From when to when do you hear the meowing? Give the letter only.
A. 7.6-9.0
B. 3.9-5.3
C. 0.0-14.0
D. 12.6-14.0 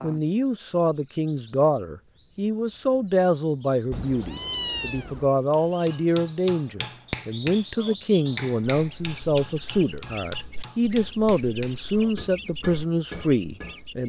B.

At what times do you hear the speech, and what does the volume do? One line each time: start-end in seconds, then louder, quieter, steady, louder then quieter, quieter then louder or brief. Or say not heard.
0.0-14.0 steady.